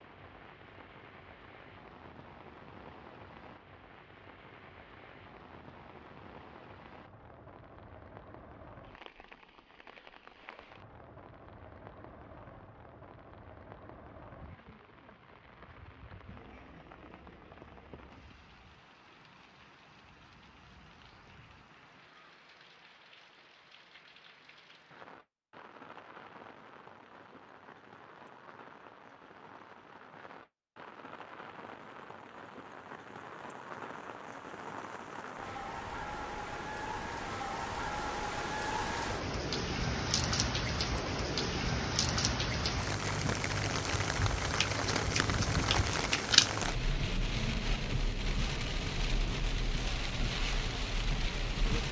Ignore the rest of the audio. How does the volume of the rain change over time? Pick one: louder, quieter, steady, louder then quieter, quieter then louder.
louder.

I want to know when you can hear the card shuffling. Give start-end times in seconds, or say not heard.
44.5-46.5.